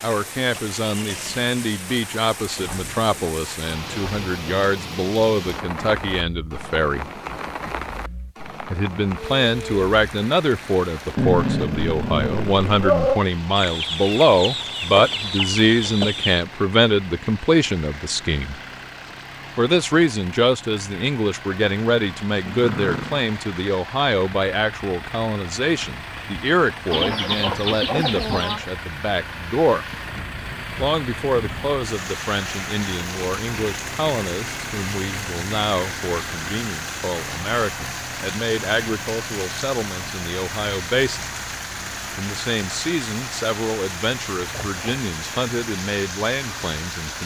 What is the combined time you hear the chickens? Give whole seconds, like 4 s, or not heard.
5 s.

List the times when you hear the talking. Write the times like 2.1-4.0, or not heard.
0.0-7.0, 8.7-18.6, 19.6-29.9, 30.8-41.2, 42.1-47.2.